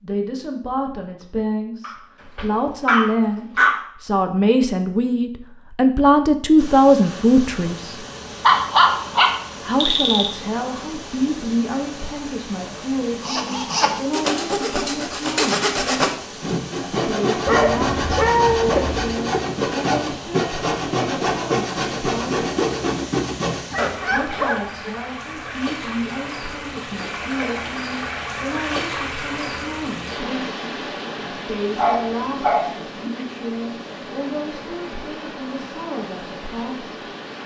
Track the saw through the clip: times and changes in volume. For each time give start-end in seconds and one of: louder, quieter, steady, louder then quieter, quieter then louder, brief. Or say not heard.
13.1-24.6 steady.